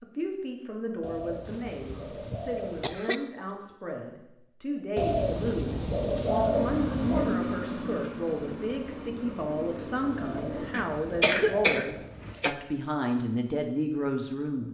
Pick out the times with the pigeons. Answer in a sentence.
You can hear the pigeons from 1.0 to 3.0 s, from 5.0 to 7.3 s and from 10.2 to 12.4 s.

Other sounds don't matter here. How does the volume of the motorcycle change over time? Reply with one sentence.
The volume of the motorcycle goes down.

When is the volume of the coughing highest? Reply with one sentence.
The volume of the coughing peaks at 11 seconds.